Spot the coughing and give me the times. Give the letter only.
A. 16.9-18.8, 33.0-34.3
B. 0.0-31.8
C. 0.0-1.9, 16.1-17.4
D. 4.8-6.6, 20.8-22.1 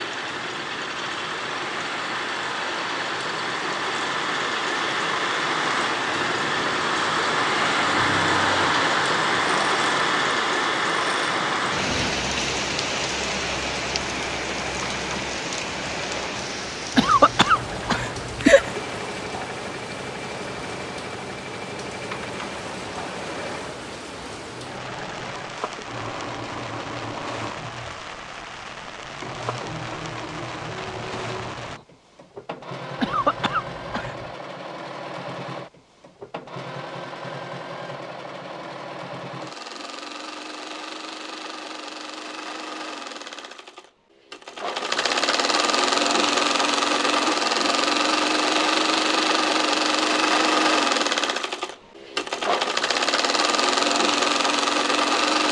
A.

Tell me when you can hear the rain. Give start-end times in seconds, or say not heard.
0.0-31.8.